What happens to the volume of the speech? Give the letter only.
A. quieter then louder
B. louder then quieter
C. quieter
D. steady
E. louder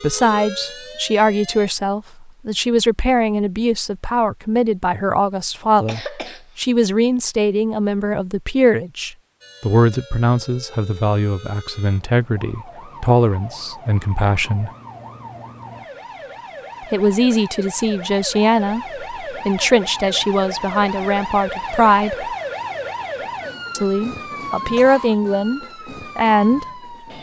D.